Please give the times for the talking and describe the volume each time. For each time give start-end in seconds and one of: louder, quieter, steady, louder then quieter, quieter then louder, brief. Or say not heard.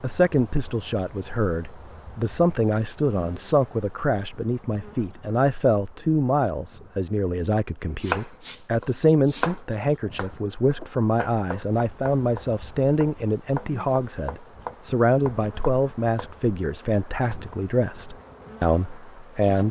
0.0-19.6 steady.